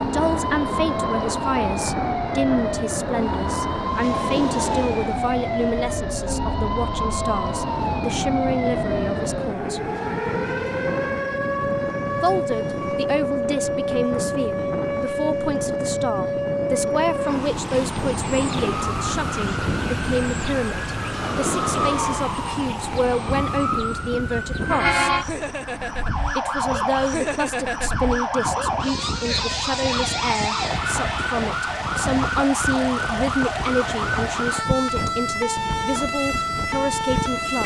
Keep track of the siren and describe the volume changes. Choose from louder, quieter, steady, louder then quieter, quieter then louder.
steady.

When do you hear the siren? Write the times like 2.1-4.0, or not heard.
0.0-37.6.